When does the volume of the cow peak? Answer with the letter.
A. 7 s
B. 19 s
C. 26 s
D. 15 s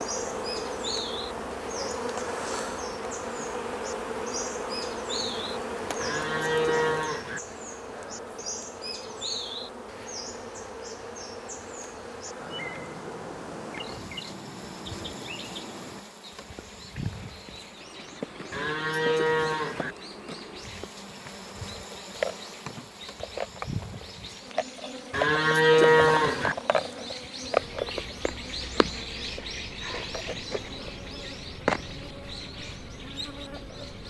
C.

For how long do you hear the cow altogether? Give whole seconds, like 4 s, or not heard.
4 s.